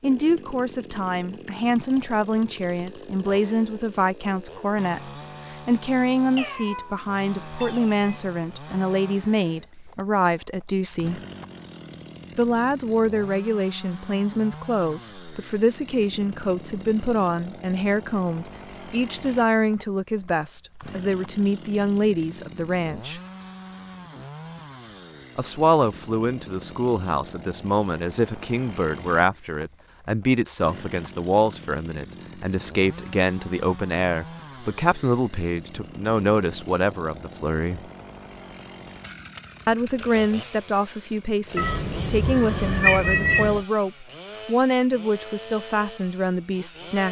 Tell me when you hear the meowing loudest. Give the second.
43 s.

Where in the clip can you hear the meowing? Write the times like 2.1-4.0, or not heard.
6.3-8.0, 41.5-43.6.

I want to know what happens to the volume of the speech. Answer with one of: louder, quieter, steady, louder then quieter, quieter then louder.
steady.